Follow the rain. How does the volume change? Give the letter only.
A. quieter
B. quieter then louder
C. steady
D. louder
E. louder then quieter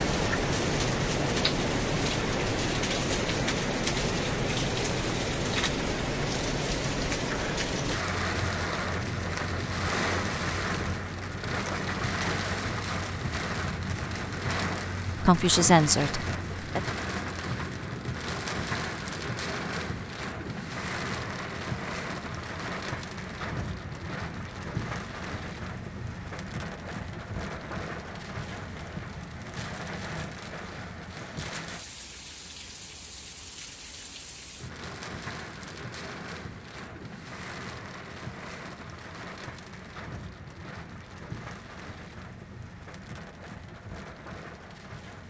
A.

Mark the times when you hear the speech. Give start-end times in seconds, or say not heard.
15.2-16.8.